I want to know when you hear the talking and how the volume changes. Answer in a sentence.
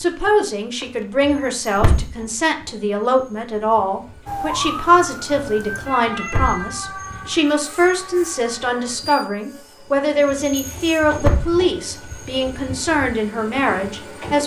You can hear the talking from 0.0 to 14.4 s, at a steady volume.